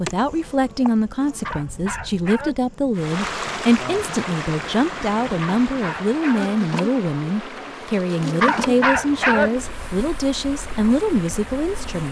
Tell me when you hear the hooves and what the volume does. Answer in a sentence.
You can't hear the hooves here.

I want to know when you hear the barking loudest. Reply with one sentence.
The loudest moment of the barking is at 9 seconds.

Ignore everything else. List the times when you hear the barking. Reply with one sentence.
You can hear the barking from 1.4 to 2.5 s, from 5.4 to 6.5 s and from 8.4 to 9.5 s.